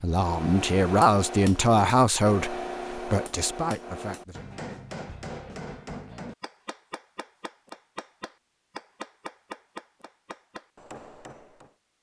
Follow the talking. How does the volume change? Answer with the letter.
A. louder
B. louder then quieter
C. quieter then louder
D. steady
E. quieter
E.